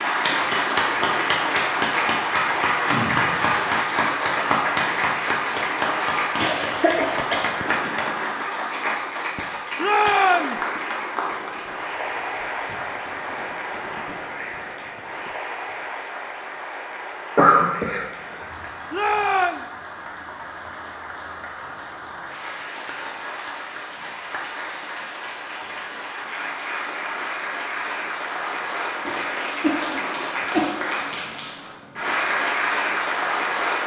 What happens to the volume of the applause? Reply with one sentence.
The loudness of the applause goes down, then up.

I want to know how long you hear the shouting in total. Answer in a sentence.
The shouting can be heard for 2 seconds in total.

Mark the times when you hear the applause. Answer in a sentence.
The applause can be heard from 0.0 to 33.8 s.